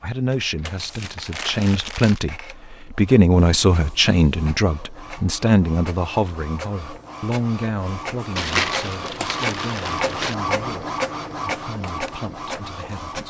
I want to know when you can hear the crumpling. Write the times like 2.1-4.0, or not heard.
0.8-2.2, 8.3-10.3.